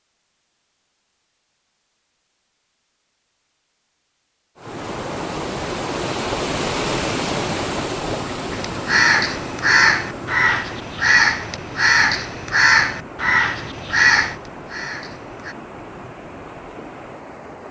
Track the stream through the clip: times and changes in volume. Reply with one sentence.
You can hear the stream from 4.5 to 17.6 s, getting quieter.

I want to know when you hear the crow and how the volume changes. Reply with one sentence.
The crow can be heard from 8.5 to 15.6 s, at a steady volume.